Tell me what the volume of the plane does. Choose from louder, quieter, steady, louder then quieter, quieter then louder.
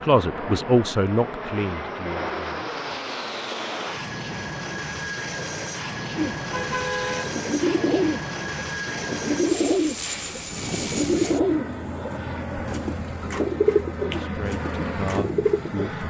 steady.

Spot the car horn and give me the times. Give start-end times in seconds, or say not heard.
6.3-7.3.